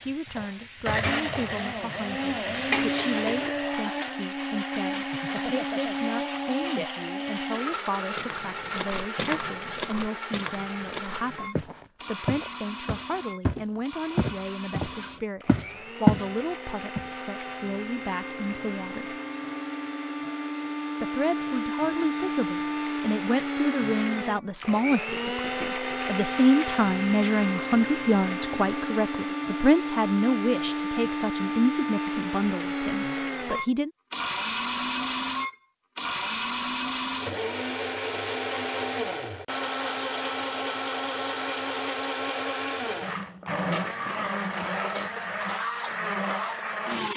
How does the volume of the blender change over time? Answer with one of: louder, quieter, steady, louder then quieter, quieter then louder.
quieter then louder.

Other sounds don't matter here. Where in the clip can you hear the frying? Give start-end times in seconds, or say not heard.
0.0-3.5.